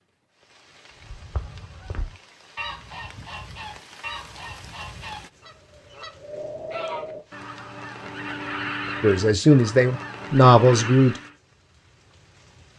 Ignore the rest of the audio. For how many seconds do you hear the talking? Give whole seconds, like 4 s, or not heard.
2 s.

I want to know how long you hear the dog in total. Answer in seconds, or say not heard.
not heard.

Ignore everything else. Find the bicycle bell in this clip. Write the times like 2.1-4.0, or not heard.
not heard.